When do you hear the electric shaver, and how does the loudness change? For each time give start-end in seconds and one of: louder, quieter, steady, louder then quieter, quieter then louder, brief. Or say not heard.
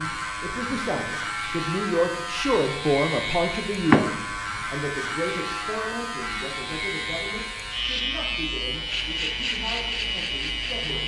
0.0-11.0 steady.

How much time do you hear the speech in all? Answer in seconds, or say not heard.
11 s.